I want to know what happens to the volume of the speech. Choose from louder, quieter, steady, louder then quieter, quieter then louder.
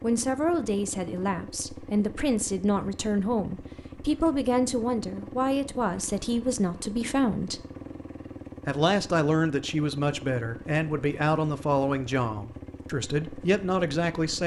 steady.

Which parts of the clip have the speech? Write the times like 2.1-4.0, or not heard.
0.0-7.6, 8.7-14.4.